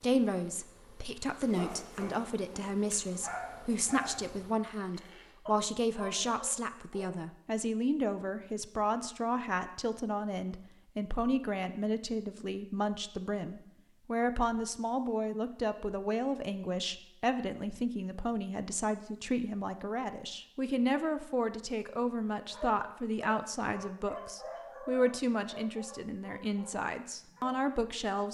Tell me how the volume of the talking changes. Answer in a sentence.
The loudness of the talking stays about the same.